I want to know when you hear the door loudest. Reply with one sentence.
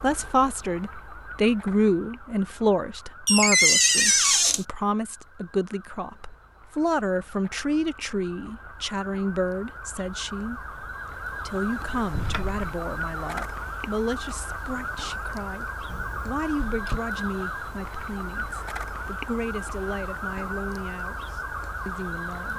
The loudest moment of the door is at 4 seconds.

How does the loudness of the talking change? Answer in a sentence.
The loudness of the talking goes down.